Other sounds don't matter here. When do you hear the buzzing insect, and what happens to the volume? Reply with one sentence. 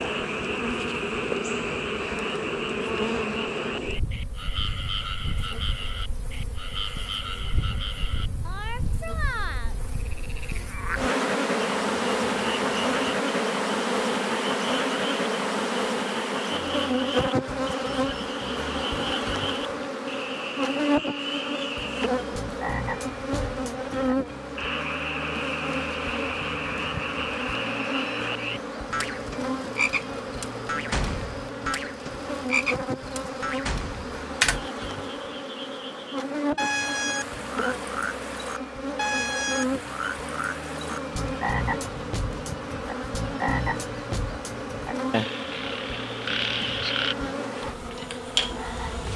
The buzzing insect can be heard from 0.0 to 49.1 s, getting louder then quieter.